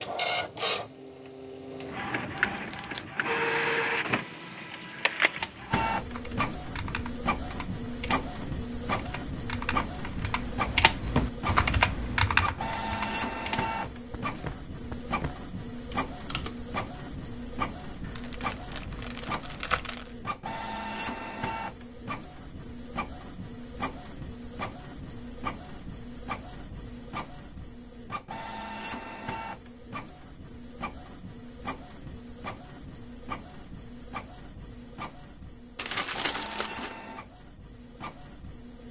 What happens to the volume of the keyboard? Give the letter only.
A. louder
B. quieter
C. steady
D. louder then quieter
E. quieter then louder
D.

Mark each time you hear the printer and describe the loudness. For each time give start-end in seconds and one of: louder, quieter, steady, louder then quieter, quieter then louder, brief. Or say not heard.
0.0-38.8 quieter.